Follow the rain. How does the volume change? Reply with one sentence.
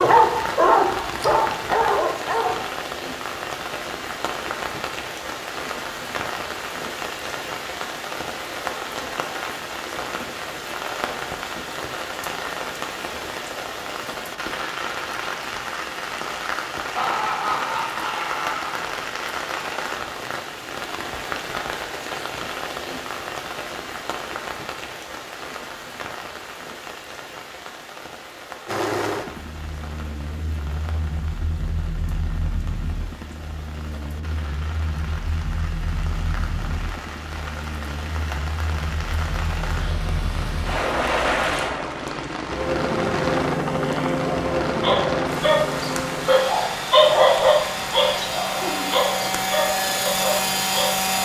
The volume of the rain goes down, then up.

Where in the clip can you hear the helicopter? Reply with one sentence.
The helicopter can be heard from 28.6 to 51.2 s.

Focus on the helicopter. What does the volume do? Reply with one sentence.
The loudness of the helicopter goes up.